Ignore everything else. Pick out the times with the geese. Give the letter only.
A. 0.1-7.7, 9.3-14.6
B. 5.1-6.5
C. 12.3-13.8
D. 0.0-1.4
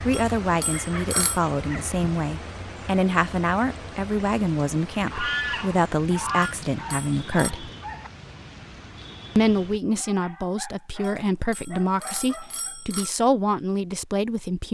B.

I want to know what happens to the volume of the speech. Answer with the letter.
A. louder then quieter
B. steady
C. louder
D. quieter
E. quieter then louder
B.